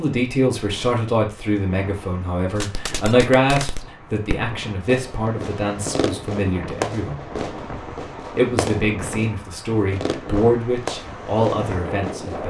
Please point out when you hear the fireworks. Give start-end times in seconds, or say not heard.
2.6-12.4.